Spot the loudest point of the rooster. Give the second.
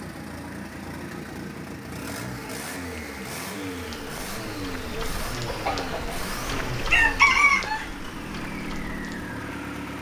7 s.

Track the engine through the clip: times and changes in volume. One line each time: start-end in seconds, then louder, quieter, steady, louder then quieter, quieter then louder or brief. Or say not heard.
0.0-9.9 steady.